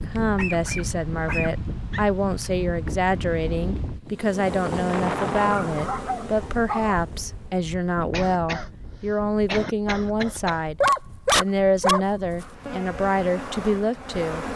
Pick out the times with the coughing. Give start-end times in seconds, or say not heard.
8.1-10.6.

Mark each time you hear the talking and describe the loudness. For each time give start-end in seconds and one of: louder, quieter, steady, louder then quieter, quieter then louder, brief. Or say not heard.
0.1-14.4 steady.